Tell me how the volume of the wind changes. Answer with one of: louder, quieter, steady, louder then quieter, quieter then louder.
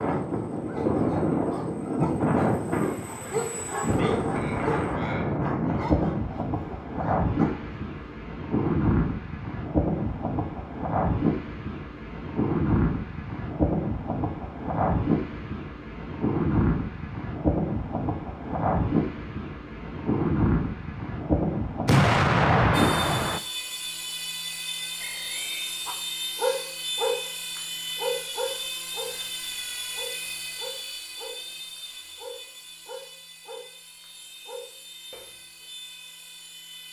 steady.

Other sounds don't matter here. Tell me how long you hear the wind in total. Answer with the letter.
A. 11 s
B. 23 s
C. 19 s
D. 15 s
B.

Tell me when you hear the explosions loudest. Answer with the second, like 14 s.
22 s.